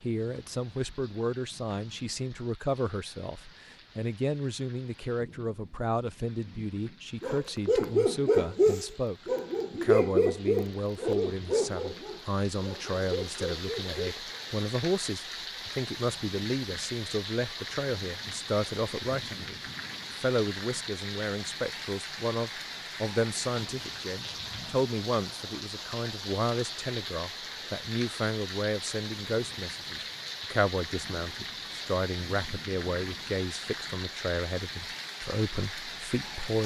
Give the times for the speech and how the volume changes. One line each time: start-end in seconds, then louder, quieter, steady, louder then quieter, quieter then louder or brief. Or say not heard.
0.0-36.6 steady.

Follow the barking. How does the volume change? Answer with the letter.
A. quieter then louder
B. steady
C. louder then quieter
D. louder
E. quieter
E.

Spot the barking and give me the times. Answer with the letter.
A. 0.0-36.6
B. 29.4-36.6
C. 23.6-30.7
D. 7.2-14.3
D.